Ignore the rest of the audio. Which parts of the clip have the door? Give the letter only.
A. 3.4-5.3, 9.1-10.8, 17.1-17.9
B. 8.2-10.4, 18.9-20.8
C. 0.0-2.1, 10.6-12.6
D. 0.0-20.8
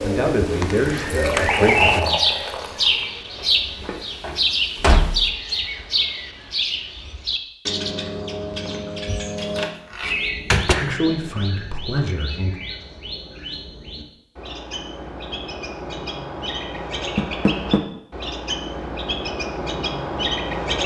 A.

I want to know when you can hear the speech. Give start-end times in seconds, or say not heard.
0.0-2.1, 10.6-12.6.